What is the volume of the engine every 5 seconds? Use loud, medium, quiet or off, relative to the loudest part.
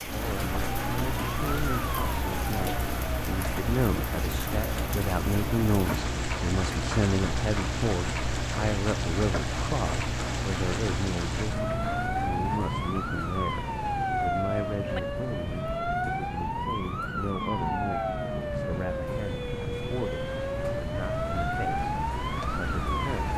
loud, loud, loud, quiet, medium.